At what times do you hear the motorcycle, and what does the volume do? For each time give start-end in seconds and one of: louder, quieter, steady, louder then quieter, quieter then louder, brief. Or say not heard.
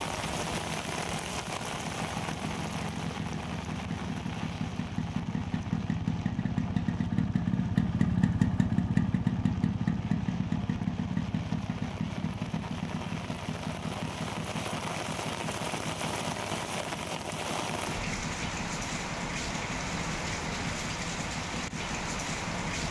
0.0-22.8 louder then quieter.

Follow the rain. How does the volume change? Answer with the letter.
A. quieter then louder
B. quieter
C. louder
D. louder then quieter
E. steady
A.